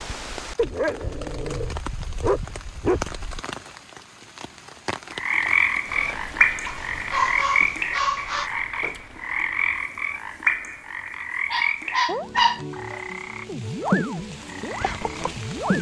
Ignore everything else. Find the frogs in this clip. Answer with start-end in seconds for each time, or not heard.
5.2-15.7.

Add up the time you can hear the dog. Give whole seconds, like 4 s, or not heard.
6 s.